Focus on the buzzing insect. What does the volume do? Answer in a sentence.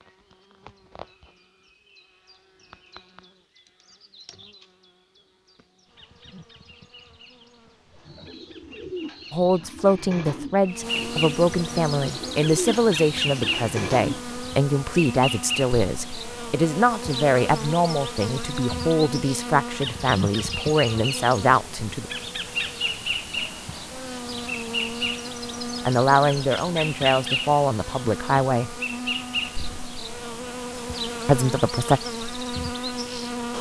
The volume of the buzzing insect goes up.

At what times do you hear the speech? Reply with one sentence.
You can hear the speech from 9.3 to 22.1 s, from 25.9 to 28.8 s and from 31.2 to 32.0 s.